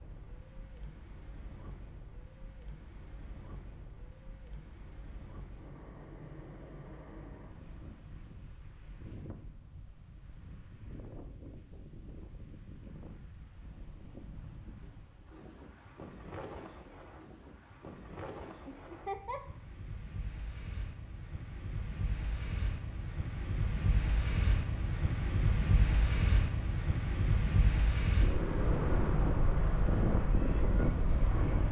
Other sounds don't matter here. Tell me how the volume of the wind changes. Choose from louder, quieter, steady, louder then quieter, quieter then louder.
louder.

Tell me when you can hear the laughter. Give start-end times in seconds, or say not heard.
18.6-19.4.